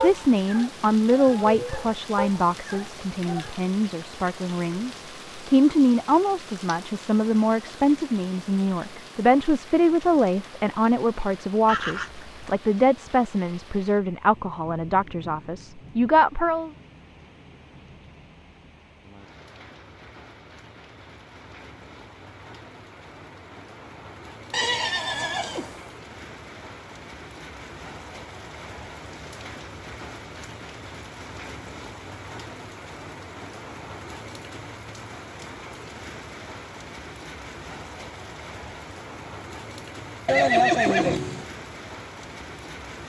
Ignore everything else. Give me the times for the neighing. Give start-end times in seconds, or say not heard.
11.7-12.6, 24.5-25.8, 40.2-41.5.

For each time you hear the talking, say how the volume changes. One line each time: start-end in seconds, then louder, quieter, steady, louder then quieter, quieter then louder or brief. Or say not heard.
0.0-16.7 steady.